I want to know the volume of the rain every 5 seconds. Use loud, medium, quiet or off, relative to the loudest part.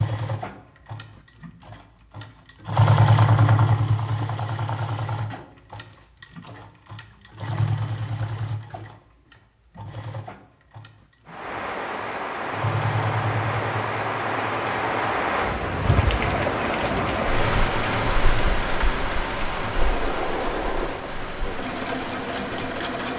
off, off, loud, loud, medium.